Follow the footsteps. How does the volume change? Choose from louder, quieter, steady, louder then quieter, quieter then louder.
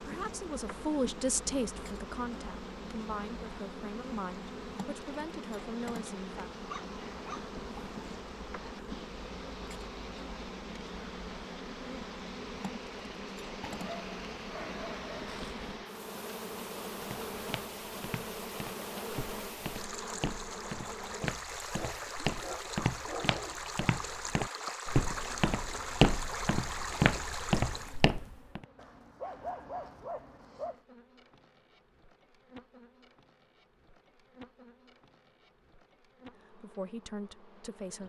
louder.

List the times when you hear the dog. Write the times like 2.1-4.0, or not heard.
6.5-7.5, 13.6-15.6, 21.2-23.6, 28.8-30.8.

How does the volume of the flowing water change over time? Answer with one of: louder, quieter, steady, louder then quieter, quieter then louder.
louder.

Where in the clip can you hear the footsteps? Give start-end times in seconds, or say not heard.
17.0-28.6.